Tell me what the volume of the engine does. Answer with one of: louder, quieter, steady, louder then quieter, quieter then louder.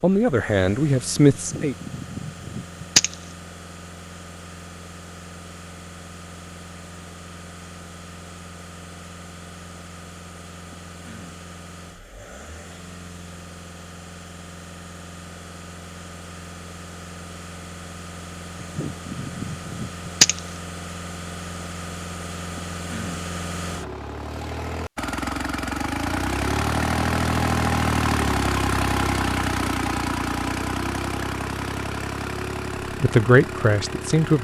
louder.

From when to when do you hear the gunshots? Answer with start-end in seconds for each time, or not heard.
1.4-3.1, 18.6-20.4.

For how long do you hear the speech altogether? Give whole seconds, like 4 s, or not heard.
3 s.